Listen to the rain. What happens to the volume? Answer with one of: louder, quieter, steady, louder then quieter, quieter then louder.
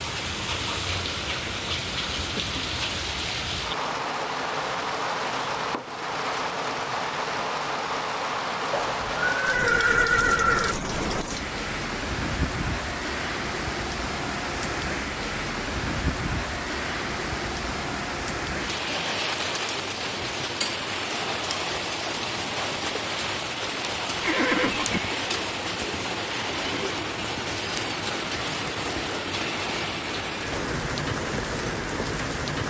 steady.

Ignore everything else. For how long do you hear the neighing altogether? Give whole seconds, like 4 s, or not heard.
3 s.